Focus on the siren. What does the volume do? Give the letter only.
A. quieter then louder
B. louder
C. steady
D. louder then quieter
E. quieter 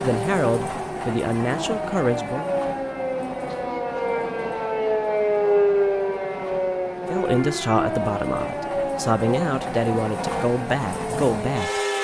D.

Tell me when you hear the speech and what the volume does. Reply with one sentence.
The speech can be heard briefly from 0.0 to 2.5 s; and from 7.0 to 11.8 s, getting quieter then louder.